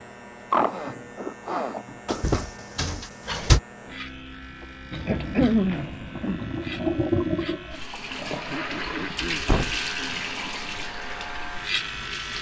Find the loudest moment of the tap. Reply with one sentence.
The volume of the tap peaks at 7 seconds.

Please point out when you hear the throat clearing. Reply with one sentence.
The throat clearing can be heard from 0.5 to 2.2 s, from 4.6 to 6.5 s and from 8.5 to 9.5 s.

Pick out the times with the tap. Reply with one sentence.
The tap can be heard from 4.9 to 12.3 s.